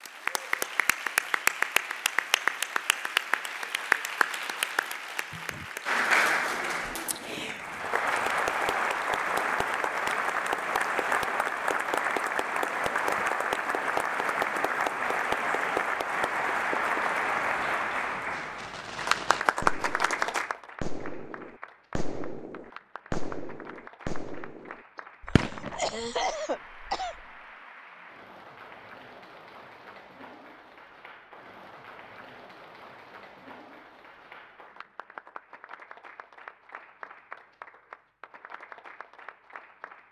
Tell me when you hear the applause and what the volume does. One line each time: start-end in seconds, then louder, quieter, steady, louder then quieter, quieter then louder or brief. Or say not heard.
0.0-40.0 quieter.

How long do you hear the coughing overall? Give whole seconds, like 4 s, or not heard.
2 s.